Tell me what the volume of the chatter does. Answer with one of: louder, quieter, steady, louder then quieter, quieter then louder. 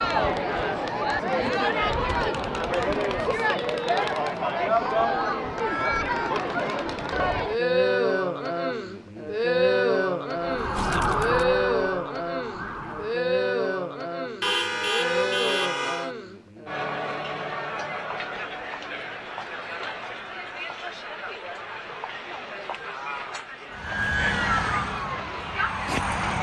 quieter.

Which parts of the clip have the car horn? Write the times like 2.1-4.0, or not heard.
14.4-16.1.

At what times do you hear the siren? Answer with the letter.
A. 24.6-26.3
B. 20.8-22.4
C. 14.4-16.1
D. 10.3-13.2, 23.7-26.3
D.